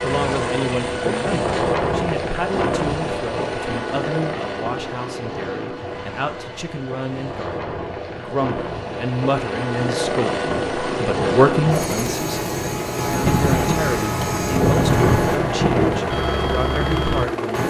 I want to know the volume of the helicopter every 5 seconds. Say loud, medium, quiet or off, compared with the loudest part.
loud, medium, loud, loud.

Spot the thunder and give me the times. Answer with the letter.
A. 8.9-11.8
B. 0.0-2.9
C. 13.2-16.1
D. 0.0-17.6
C.